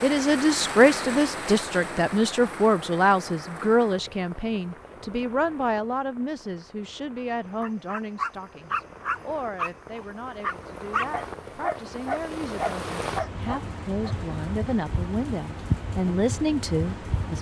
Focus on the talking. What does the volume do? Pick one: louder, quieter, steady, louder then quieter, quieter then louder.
quieter then louder.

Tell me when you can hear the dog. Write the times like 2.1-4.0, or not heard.
7.6-14.2.